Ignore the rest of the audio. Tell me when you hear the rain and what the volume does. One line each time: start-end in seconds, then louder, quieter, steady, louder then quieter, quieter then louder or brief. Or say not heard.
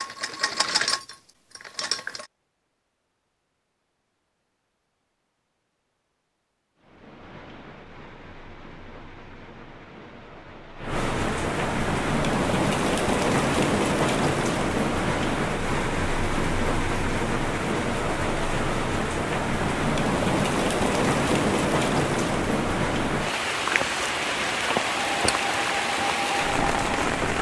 6.8-27.3 louder.